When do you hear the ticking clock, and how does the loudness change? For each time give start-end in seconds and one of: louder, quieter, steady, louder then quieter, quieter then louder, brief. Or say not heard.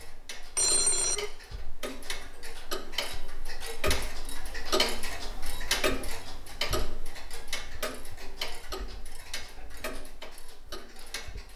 0.0-11.5 louder then quieter.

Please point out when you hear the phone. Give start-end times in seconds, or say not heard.
0.6-1.3.